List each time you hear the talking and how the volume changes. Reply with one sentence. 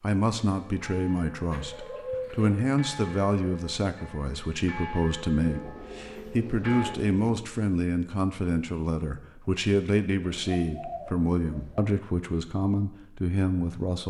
The talking can be heard from 0.0 to 14.0 s, at a steady volume.